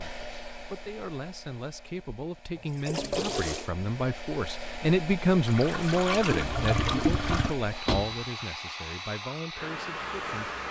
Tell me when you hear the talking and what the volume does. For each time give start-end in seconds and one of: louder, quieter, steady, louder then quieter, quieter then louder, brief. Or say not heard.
0.0-10.6 louder then quieter.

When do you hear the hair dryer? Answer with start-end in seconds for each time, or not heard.
0.0-10.6.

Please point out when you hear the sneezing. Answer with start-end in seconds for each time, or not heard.
not heard.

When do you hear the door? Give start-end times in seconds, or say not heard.
7.8-8.2.